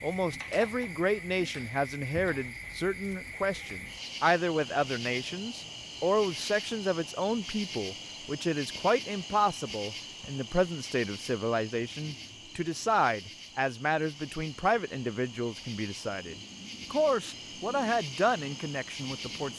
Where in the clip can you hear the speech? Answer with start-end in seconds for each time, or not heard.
0.0-19.5.